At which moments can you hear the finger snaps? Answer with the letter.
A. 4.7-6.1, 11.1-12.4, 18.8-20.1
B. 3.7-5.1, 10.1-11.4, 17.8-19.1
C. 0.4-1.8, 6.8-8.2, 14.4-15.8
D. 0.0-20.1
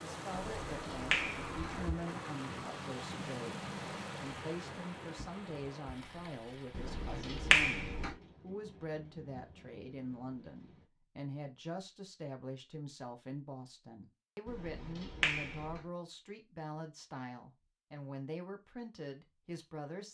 C.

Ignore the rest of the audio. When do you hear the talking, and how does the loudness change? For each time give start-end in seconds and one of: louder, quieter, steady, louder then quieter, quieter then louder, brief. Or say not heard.
0.0-20.1 steady.